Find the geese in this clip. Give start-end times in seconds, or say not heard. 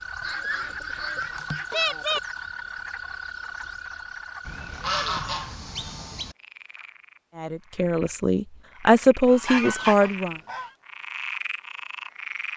0.2-2.2, 4.5-6.3, 9.2-10.7.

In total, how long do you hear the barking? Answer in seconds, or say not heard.
not heard.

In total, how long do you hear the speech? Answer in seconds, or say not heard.
3 s.